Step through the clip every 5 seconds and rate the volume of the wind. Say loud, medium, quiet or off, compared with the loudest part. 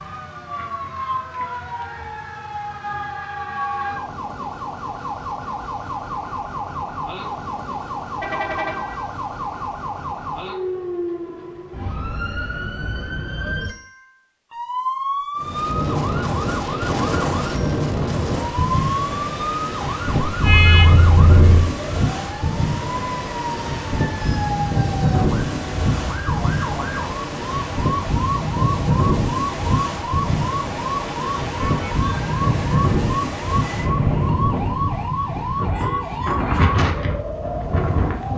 off, off, off, loud, loud, loud, loud, loud.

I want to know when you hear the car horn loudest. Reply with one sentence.
The loudest moment of the car horn is at 21 seconds.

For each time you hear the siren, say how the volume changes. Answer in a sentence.
You can hear the siren from 0.0 to 38.3 s, at a steady volume.